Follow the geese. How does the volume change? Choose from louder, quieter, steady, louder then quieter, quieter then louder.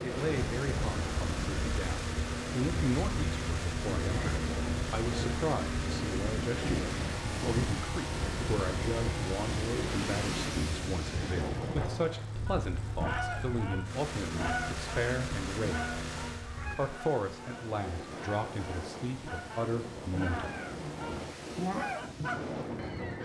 quieter then louder.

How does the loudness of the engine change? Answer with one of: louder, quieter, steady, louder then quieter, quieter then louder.
quieter.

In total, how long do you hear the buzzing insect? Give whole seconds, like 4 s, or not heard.
not heard.